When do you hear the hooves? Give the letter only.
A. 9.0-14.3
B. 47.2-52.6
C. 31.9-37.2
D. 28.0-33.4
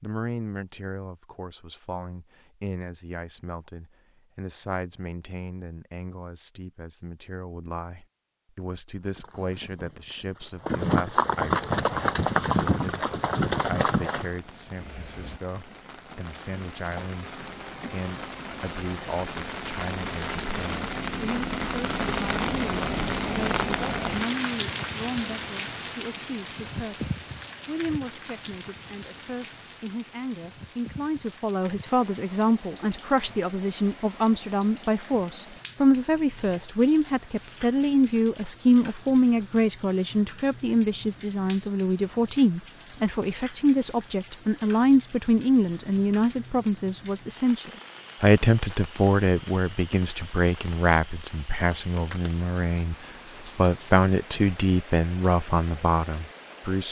A.